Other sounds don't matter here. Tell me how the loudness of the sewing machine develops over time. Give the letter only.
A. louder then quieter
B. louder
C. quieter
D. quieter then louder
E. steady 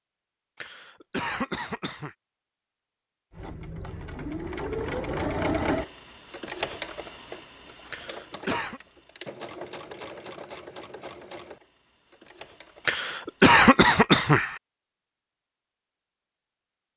C.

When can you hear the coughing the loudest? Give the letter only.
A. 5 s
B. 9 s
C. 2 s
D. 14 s
D.